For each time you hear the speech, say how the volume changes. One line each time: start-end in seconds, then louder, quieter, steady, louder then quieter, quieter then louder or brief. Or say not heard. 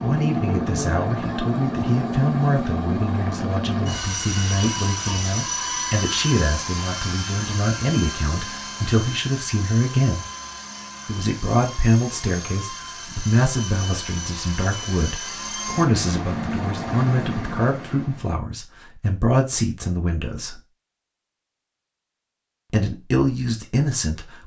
0.0-10.2 steady
11.1-20.6 steady
22.7-24.4 brief.